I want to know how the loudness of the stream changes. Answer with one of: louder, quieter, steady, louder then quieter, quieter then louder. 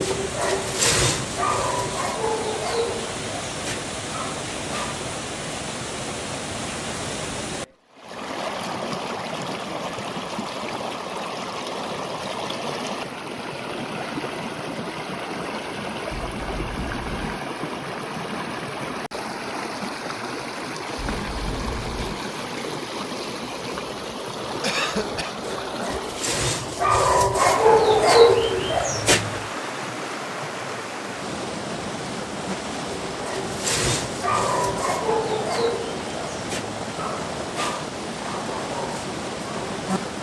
steady.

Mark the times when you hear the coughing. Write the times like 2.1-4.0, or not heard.
24.6-25.4.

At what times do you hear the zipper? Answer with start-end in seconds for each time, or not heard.
16.1-17.4, 20.9-22.2.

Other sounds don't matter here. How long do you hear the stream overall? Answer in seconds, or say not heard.
40 s.